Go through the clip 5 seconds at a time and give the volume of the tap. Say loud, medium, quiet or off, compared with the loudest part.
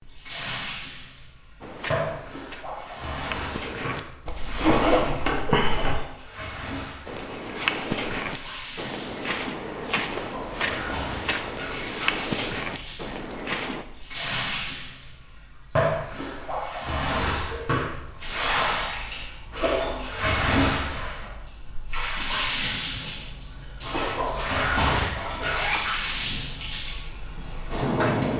medium, medium, medium, loud, loud, loud.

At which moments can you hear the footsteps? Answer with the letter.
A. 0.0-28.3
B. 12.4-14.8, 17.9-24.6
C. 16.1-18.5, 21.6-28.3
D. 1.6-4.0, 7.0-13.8
D.